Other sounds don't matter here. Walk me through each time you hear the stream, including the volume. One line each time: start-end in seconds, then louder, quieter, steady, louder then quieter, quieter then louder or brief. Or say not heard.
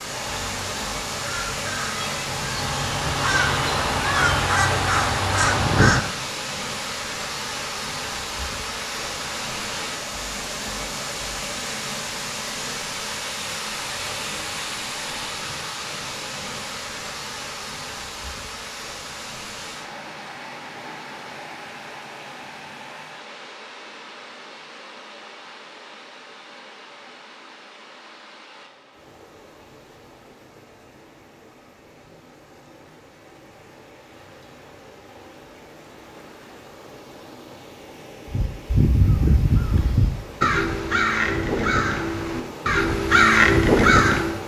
0.0-44.4 quieter then louder.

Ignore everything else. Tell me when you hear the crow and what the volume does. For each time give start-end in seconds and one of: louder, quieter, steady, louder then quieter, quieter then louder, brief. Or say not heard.
0.0-6.0 louder
38.2-44.4 louder.